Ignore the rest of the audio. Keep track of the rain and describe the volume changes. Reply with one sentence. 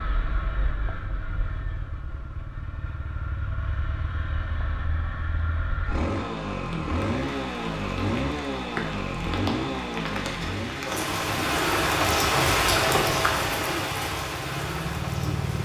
The volume of the rain goes up, then down.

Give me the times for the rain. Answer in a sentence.
The rain can be heard from 6.5 to 15.6 s.